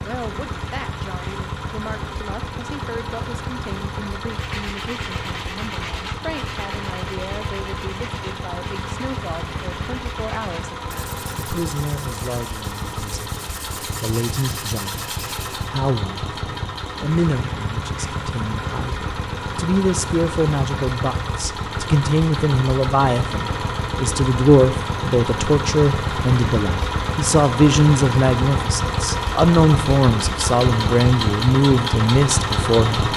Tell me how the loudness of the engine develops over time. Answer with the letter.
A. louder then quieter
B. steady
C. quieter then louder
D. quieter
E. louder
E.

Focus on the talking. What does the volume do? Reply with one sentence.
The volume of the talking goes up.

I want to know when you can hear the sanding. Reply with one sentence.
You can hear the sanding from 4.2 to 15.7 s.